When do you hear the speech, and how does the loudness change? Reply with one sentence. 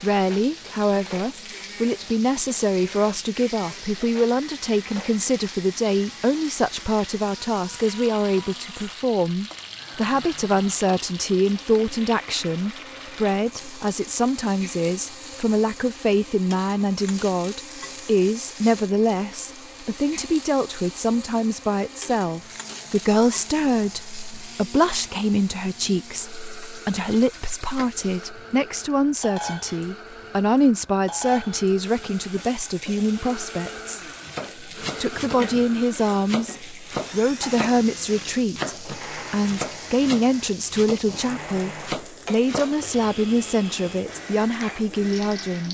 The speech can be heard from 0.0 to 34.0 s, at a steady volume; and from 34.8 to 45.7 s, at a steady volume.